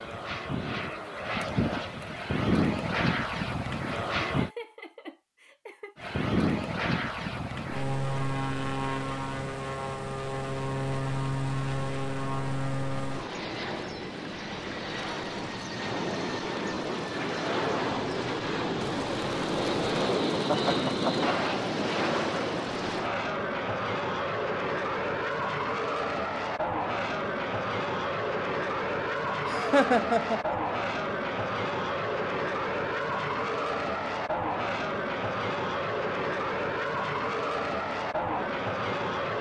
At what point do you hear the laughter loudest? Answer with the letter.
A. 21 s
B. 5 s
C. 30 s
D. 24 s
C.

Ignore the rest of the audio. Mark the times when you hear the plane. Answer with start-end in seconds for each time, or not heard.
0.0-4.5, 6.0-39.3.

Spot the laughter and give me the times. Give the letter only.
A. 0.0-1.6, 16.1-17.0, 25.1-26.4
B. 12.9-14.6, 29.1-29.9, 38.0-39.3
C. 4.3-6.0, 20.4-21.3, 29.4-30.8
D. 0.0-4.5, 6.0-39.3
C.